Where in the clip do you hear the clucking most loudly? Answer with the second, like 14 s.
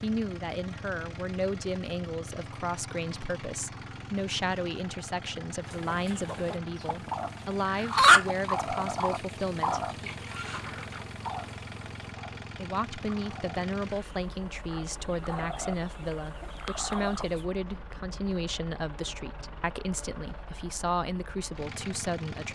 8 s.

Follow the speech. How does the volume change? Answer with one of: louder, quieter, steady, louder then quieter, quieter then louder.
steady.